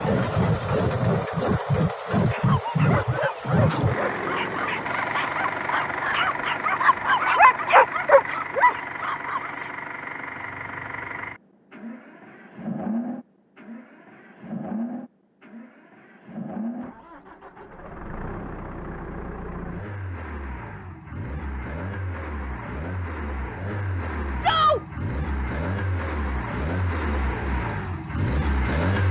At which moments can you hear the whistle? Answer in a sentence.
The whistle can't be heard in this clip.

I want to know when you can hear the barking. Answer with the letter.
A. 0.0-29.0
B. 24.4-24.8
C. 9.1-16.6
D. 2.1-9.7
D.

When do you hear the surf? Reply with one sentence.
You can't hear the surf here.